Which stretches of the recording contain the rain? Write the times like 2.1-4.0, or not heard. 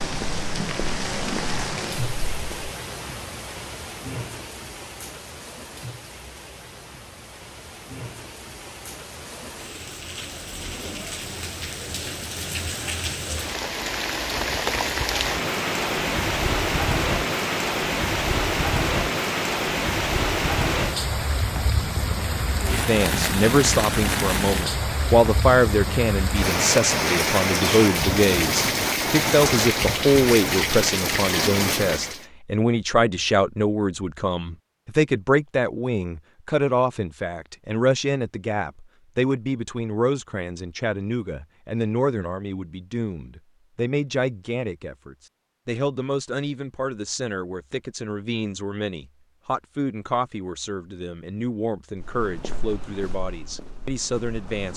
0.0-32.2.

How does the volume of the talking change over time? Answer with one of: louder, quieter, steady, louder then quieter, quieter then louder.
quieter.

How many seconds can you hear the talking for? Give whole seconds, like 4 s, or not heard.
32 s.